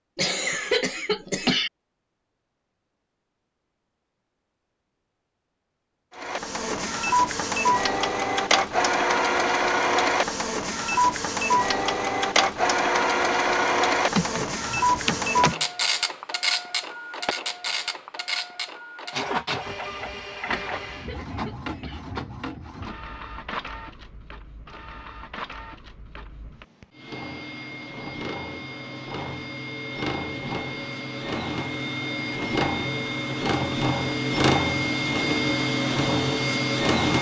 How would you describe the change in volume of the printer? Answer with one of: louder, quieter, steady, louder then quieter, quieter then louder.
quieter then louder.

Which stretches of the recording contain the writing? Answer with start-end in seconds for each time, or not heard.
not heard.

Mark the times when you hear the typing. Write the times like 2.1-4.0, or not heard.
14.2-15.7.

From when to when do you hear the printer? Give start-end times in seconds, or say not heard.
6.2-37.1.